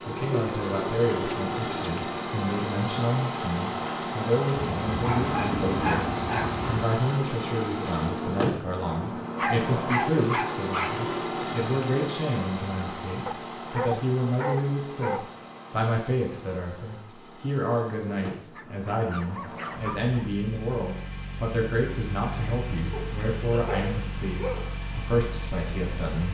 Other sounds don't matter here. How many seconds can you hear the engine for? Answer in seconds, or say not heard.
26 s.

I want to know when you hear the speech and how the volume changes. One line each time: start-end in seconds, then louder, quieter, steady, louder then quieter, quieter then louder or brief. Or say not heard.
0.1-26.3 steady.